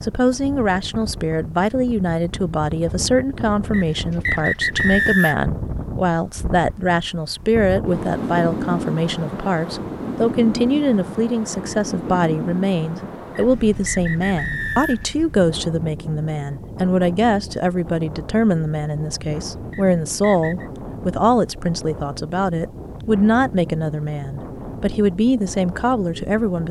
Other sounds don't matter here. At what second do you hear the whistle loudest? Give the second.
5 s.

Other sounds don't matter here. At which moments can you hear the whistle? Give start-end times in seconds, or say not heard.
3.7-5.4, 13.3-15.2, 19.7-20.7.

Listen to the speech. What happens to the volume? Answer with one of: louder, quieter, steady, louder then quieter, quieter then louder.
steady.